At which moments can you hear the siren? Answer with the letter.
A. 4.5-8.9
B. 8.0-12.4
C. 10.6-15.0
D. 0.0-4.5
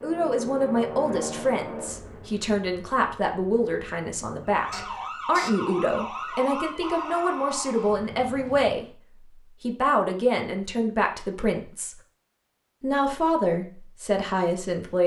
A.